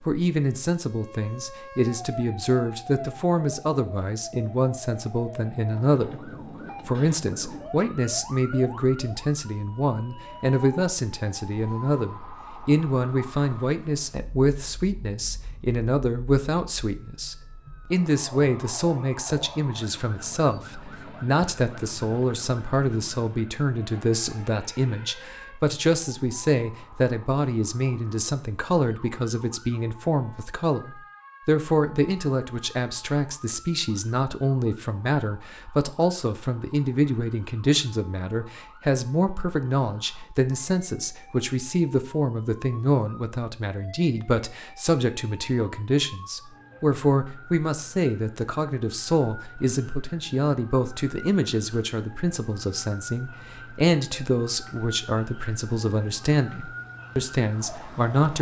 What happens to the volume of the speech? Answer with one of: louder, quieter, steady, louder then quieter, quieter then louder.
steady.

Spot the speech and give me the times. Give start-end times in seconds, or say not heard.
0.0-58.3.